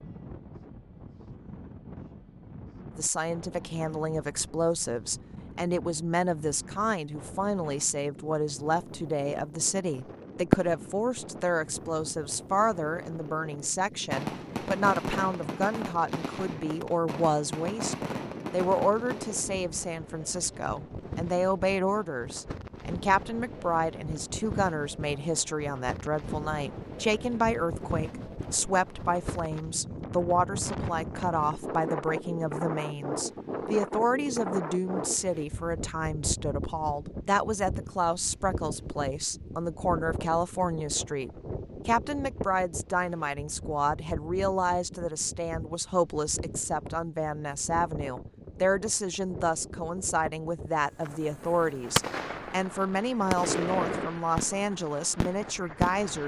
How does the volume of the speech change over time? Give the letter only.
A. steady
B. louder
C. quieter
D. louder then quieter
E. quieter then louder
A.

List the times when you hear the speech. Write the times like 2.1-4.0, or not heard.
3.0-56.2.